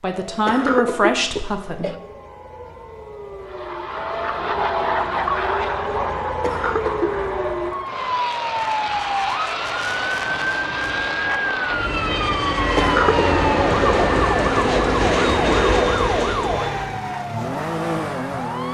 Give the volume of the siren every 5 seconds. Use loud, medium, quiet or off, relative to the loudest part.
medium, loud, loud, loud.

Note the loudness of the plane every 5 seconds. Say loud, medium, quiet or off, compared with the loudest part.
medium, medium, loud, loud.